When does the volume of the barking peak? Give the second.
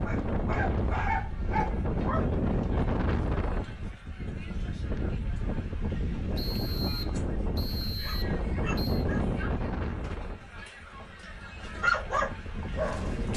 12 s.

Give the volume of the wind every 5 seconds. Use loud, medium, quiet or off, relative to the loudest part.
loud, loud, medium.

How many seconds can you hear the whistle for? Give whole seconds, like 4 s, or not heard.
3 s.